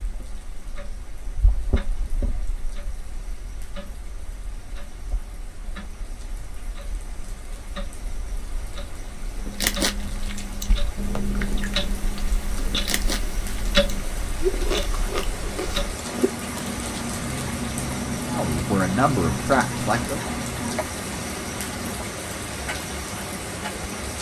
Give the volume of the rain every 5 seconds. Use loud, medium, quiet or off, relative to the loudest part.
quiet, quiet, medium, loud, loud.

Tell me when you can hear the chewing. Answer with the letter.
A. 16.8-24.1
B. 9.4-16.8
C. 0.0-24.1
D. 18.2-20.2
B.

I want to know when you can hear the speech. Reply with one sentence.
You can hear the speech from 18.2 to 20.2 s.